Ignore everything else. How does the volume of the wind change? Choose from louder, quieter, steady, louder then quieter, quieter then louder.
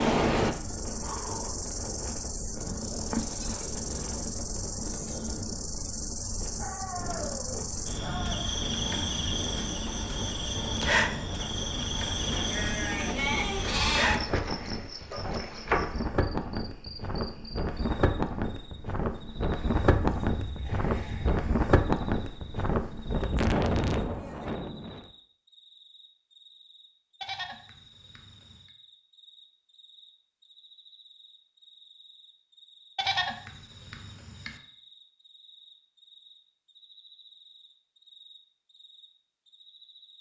louder.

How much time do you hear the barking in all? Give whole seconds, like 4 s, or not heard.
2 s.